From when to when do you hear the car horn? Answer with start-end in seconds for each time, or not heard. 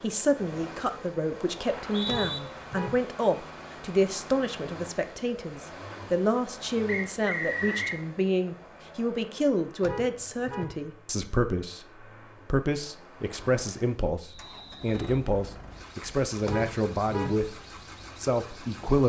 2.0-3.0, 9.8-10.8, 16.4-17.4.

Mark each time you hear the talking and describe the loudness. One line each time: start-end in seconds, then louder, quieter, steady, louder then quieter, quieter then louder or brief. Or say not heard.
0.0-19.0 steady.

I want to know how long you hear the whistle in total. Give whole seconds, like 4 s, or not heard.
3 s.